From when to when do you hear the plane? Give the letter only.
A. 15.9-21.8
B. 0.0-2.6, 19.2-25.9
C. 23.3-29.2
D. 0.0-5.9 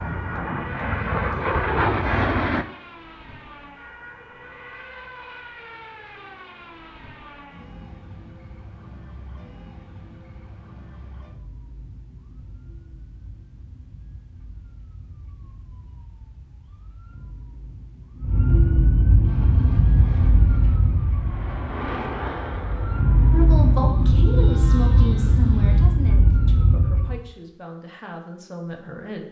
B.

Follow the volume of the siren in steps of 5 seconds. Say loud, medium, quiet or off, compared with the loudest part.
quiet, quiet, quiet, loud, loud, loud.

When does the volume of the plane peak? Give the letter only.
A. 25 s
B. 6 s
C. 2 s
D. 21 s
C.